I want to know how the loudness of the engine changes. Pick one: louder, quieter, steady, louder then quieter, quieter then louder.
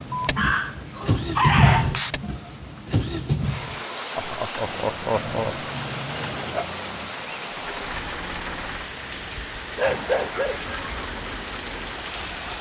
quieter.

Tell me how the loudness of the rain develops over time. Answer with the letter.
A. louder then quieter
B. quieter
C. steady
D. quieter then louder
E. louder
E.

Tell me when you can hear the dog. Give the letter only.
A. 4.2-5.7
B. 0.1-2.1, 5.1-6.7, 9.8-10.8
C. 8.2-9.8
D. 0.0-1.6
B.